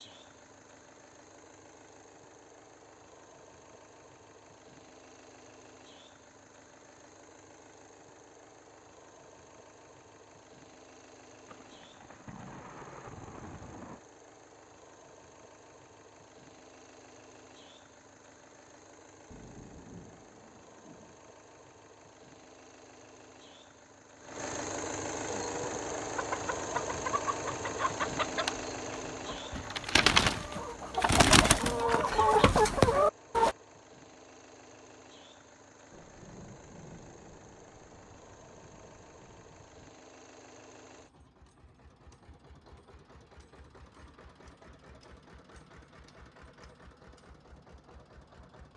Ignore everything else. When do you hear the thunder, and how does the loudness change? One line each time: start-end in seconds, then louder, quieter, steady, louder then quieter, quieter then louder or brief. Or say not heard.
11.4-14.0 brief
19.3-21.1 brief
35.9-39.9 quieter.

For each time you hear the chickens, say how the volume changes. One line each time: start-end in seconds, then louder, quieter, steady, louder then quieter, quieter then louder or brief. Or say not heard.
25.2-33.5 louder.